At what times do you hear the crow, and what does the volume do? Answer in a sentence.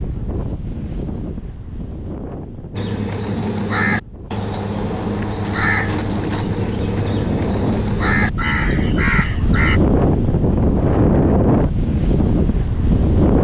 You can hear the crow from 2.8 to 9.8 s, at a steady volume.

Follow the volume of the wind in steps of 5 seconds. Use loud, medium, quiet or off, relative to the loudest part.
quiet, medium, loud.